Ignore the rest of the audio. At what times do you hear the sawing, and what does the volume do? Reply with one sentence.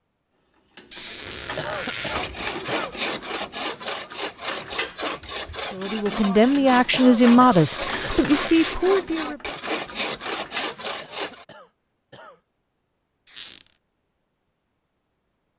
You can hear the sawing from 2.0 to 11.4 s, at a steady volume.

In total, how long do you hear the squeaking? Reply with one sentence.
The squeaking can be heard for 3 seconds in total.